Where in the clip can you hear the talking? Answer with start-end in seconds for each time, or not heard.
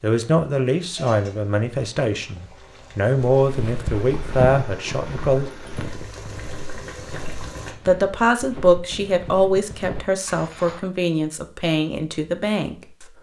0.0-5.5, 7.8-13.1.